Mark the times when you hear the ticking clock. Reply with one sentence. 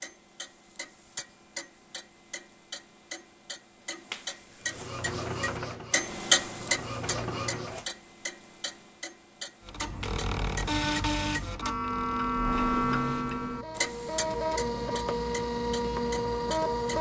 You can hear the ticking clock from 0.0 to 16.9 s.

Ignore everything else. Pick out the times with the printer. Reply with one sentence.
The printer can be heard from 4.6 to 7.9 s and from 9.7 to 16.9 s.